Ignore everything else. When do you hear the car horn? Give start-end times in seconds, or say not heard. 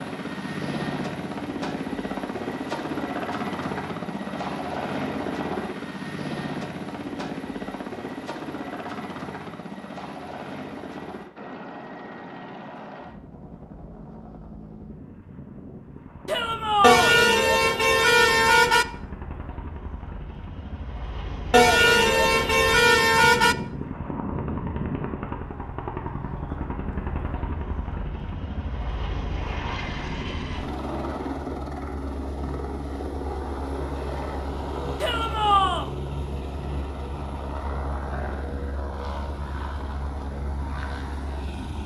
16.8-18.9, 21.5-23.6.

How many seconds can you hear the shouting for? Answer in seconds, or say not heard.
2 s.